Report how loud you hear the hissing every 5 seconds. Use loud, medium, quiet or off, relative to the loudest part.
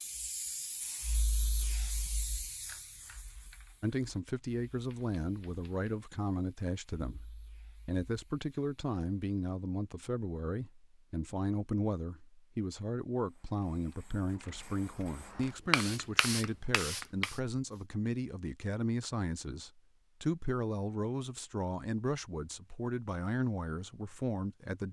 medium, quiet, quiet, loud, off.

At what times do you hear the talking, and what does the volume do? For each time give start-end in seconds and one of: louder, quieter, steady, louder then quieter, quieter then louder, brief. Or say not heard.
3.8-24.8 steady.